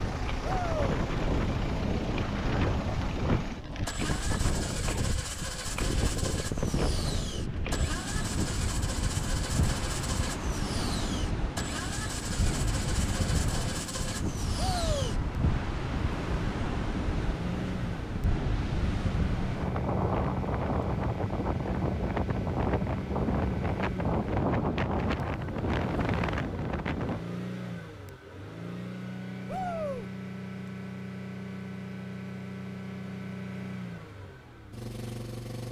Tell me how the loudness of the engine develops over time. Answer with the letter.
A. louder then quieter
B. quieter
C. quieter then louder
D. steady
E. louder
D.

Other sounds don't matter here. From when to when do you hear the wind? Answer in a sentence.
You can hear the wind from 0.0 to 27.2 s.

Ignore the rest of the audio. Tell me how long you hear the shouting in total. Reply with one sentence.
The shouting can be heard for 2 seconds in total.